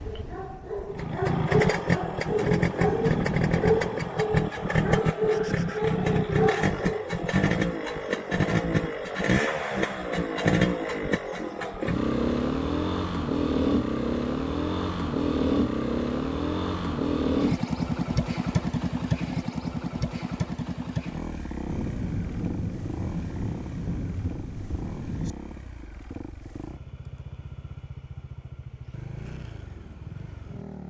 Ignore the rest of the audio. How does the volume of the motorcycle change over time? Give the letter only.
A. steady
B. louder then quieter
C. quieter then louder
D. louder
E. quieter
E.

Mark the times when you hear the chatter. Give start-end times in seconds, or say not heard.
not heard.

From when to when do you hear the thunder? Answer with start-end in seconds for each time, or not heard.
2.2-4.2, 21.6-25.4.